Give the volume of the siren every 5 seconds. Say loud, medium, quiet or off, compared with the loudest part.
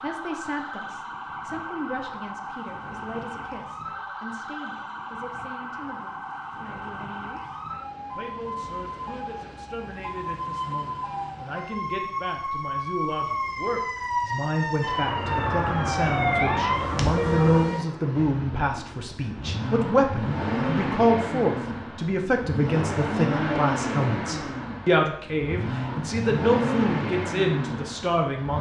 medium, medium, loud, loud, off, off.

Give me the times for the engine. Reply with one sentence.
The engine can be heard from 14.9 to 28.5 s.